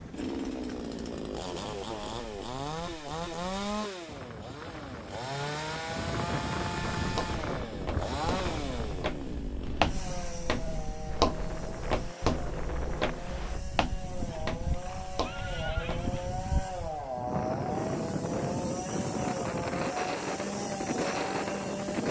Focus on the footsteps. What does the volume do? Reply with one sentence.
The volume of the footsteps goes up, then down.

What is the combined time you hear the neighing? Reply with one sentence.
You can hear the neighing for 2 seconds altogether.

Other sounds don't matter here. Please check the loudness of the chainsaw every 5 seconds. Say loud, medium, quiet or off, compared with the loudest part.
loud, loud, medium, loud, loud.